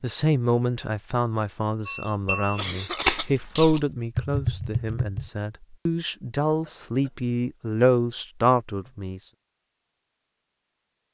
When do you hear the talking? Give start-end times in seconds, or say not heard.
0.0-9.2.